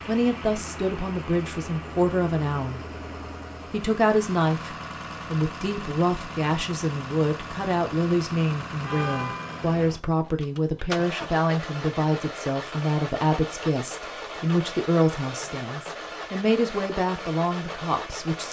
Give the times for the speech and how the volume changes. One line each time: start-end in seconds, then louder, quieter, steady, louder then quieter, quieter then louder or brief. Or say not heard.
0.1-2.8 brief
3.7-18.4 steady.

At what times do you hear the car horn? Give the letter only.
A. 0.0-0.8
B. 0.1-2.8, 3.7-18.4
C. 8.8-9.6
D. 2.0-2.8
C.